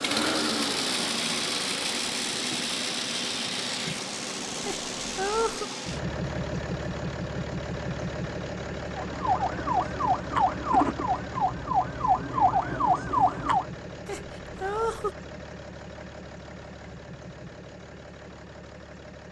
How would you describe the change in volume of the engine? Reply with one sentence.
The volume of the engine goes down.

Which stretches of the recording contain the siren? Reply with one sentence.
You can hear the siren from 8.9 to 13.7 s.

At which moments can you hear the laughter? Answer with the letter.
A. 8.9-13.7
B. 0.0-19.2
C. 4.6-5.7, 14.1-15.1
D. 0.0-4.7
C.